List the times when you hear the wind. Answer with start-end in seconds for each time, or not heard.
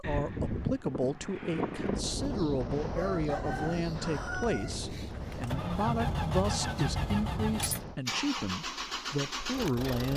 0.0-8.0.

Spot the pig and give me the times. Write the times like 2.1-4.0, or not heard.
not heard.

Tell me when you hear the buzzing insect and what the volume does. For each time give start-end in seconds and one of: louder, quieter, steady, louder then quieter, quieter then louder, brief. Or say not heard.
not heard.